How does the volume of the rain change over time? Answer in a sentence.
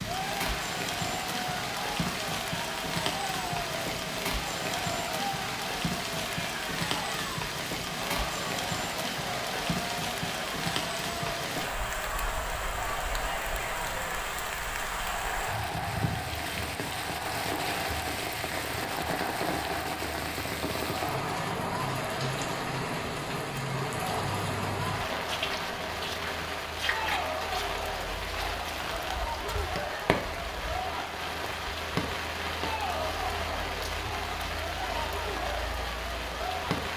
The loudness of the rain stays about the same.